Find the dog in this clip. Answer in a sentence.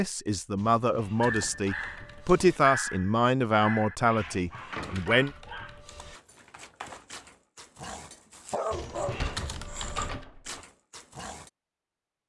The dog can be heard from 1.1 to 11.5 s.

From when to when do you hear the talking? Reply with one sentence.
You can hear the talking from 0.0 to 5.3 s.